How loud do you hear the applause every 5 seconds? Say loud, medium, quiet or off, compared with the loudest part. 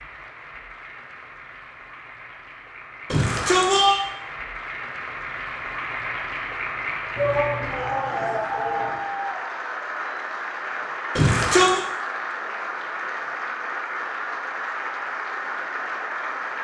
medium, loud, loud, loud.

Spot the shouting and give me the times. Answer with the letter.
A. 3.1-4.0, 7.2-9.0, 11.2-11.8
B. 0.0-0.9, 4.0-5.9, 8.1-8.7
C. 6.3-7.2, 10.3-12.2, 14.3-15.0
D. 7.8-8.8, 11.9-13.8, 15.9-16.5
A.